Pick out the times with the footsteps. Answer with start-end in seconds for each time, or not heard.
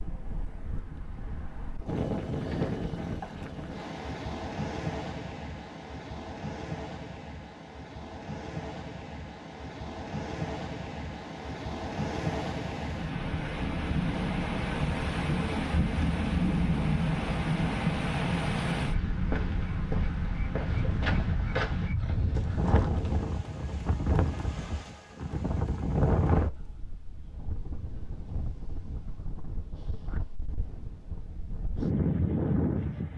18.8-23.2.